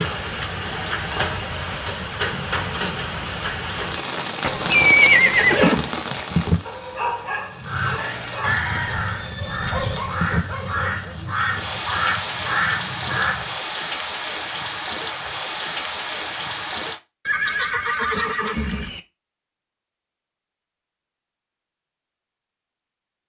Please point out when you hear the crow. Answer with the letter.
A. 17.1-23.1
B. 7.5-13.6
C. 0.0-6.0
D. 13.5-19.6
B.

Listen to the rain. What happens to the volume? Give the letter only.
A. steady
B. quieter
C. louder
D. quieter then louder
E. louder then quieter
D.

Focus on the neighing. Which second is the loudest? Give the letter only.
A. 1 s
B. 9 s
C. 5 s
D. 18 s
C.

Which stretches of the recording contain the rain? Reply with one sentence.
The rain can be heard from 0.0 to 17.0 s.